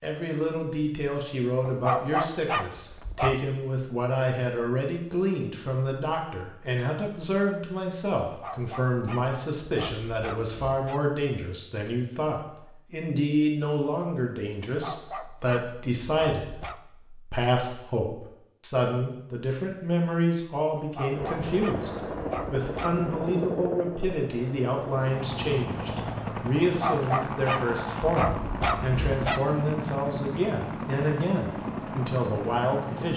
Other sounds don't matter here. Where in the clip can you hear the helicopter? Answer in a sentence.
You can hear the helicopter from 21.1 to 33.1 s.